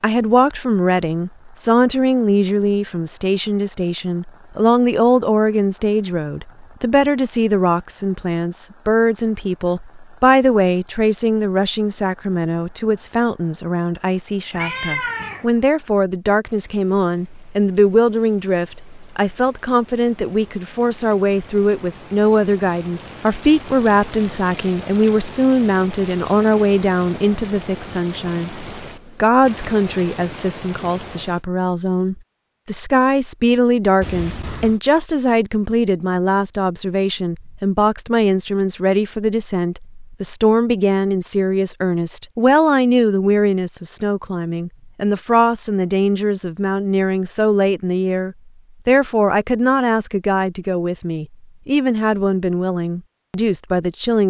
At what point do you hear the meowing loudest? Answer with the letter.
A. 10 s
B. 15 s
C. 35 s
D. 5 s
B.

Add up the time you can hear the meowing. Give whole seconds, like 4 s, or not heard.
2 s.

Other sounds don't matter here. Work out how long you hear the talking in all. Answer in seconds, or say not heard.
54 s.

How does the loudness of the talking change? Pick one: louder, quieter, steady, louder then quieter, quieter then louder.
steady.